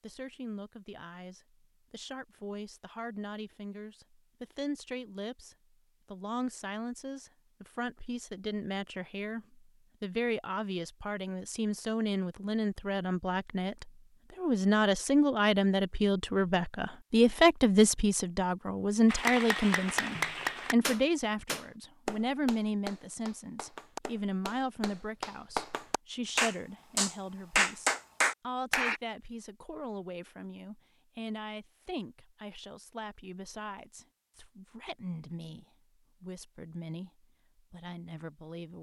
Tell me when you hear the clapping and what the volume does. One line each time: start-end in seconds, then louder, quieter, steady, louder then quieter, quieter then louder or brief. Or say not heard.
19.1-29.0 quieter then louder.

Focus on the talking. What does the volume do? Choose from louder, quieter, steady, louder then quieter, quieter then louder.
louder then quieter.